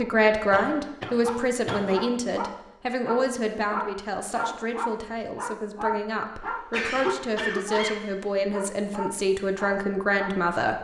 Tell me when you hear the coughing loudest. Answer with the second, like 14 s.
7 s.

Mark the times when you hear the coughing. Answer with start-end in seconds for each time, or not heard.
0.5-2.0, 6.7-8.1.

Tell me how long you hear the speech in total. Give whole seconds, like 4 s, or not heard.
11 s.